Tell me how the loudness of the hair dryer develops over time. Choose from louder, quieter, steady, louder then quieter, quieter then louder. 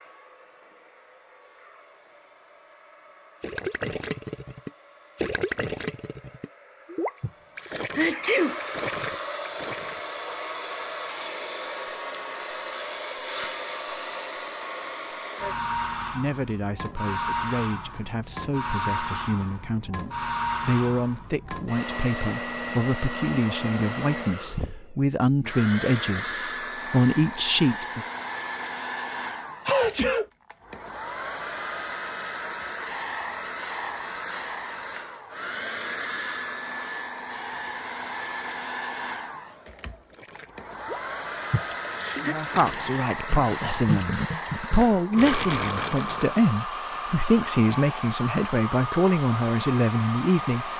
louder.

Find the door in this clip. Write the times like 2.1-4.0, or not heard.
not heard.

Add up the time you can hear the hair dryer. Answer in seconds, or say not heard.
51 s.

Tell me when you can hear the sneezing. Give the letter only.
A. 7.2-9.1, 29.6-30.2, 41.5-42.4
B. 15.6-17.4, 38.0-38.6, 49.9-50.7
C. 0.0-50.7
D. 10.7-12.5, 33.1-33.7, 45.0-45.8
A.